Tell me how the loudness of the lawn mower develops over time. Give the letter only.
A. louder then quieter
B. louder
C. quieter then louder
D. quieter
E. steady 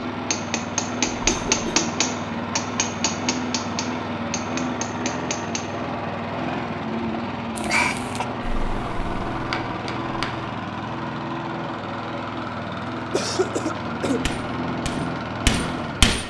E.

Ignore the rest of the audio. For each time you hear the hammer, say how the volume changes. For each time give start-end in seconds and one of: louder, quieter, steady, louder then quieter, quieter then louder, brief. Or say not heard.
0.0-5.7 quieter
8.4-10.5 brief
14.1-16.2 brief.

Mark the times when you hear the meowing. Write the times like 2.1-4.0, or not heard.
not heard.